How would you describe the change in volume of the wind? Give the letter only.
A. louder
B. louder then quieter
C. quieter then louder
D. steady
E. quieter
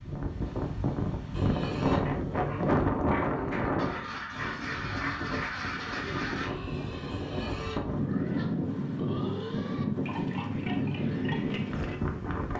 C.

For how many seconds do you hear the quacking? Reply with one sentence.
The quacking can be heard for 3 seconds in total.